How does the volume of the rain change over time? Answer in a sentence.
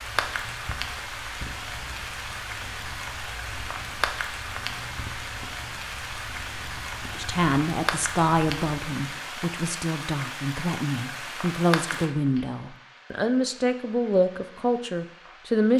The volume of the rain goes down.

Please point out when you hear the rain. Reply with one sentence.
The rain can be heard from 0.0 to 15.7 s.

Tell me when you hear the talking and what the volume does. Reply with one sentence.
The talking can be heard from 7.2 to 15.7 s, getting quieter then louder.